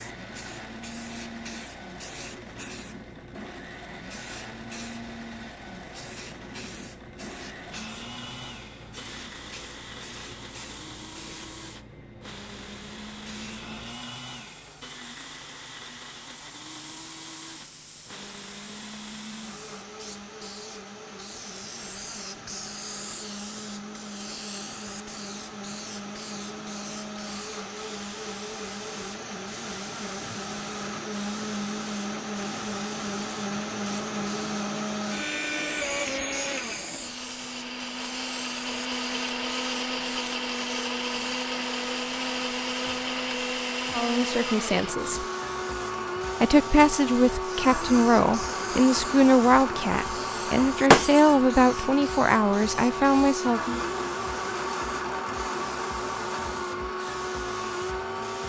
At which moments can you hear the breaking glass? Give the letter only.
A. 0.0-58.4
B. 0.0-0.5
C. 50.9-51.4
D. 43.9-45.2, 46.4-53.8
C.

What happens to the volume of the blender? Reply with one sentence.
The volume of the blender goes up.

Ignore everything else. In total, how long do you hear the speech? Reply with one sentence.
The speech can be heard for 9 seconds in total.